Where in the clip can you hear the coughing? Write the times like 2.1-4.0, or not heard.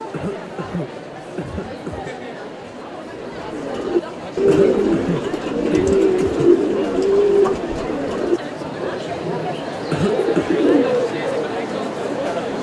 0.1-2.1, 4.5-6.5, 9.9-10.6.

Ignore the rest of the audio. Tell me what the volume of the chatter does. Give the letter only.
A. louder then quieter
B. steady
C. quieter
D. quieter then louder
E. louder
E.